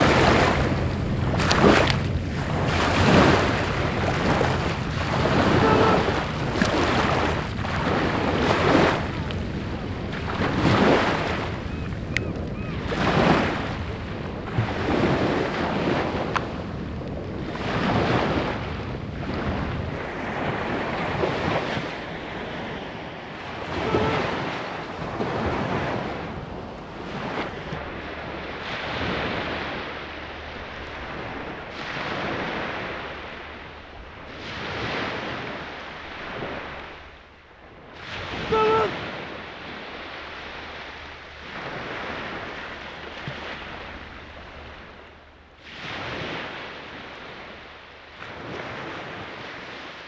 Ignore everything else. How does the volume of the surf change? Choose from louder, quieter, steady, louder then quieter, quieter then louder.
quieter.